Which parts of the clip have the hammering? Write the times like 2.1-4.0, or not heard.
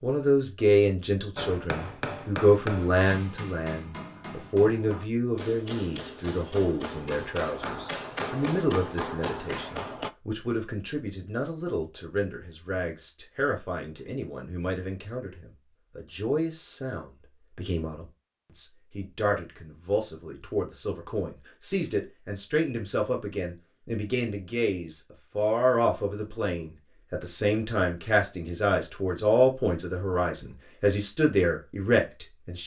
1.4-10.1.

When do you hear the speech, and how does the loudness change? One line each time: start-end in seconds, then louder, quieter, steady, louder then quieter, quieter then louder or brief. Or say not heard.
0.0-32.6 quieter then louder.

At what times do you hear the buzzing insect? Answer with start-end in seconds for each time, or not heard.
not heard.